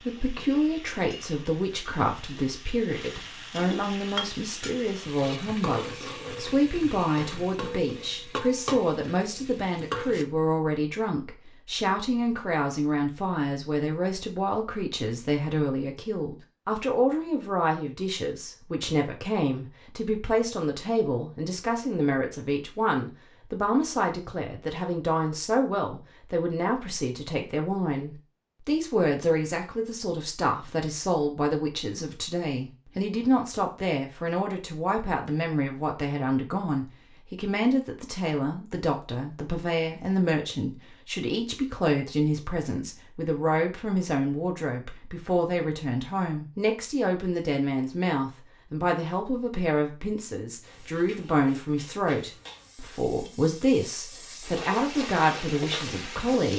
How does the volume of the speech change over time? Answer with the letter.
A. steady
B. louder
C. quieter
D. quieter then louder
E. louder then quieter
A.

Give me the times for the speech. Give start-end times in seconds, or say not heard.
0.1-56.5.